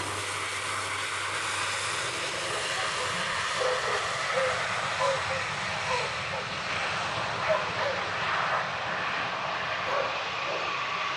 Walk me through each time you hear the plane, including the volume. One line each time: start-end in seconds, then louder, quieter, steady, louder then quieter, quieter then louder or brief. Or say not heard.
0.0-11.1 steady.